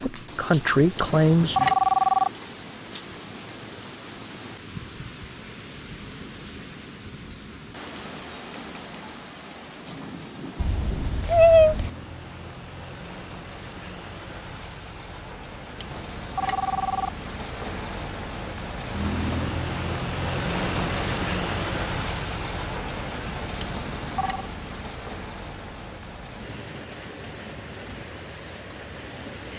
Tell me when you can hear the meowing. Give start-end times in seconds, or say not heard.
10.6-11.9.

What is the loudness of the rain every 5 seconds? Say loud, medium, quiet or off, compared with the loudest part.
medium, medium, medium, loud, loud, medium.